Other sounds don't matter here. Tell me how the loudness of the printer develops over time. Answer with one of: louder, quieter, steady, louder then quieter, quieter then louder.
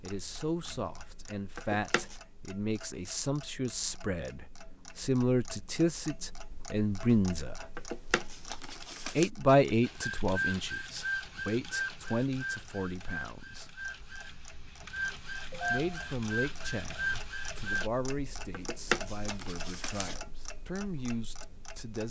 quieter then louder.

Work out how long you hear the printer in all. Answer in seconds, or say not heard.
8 s.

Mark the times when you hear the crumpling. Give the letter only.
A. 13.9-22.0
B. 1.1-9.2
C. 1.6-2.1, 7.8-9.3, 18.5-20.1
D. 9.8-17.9
C.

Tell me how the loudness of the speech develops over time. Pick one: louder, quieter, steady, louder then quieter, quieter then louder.
louder then quieter.